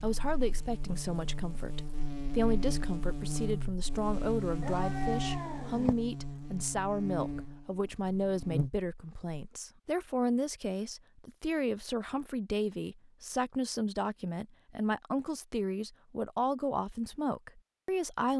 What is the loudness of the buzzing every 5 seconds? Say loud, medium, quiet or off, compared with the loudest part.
loud, loud, off, off.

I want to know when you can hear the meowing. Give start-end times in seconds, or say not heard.
4.6-6.0.